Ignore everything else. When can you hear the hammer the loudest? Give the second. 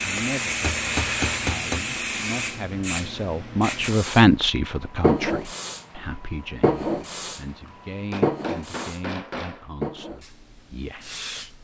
1 s.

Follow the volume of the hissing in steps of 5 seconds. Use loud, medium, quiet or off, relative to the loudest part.
loud, loud, quiet.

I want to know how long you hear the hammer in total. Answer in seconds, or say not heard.
4 s.